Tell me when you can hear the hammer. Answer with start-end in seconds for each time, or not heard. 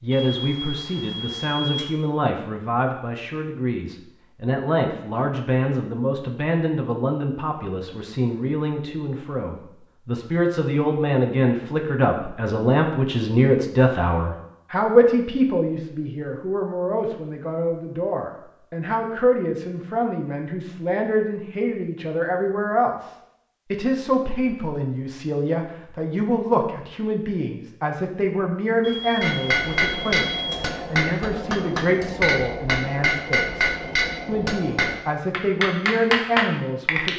29.2-37.1.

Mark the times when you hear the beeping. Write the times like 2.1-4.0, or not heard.
0.1-1.9, 28.8-30.6.